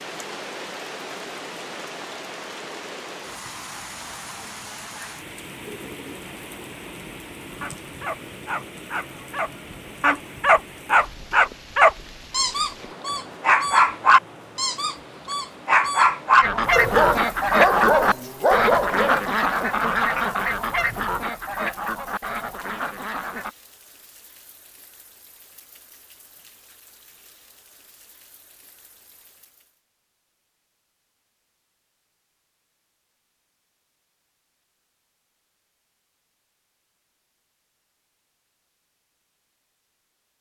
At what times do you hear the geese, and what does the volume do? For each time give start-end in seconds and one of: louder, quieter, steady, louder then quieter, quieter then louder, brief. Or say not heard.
16.4-23.5 quieter.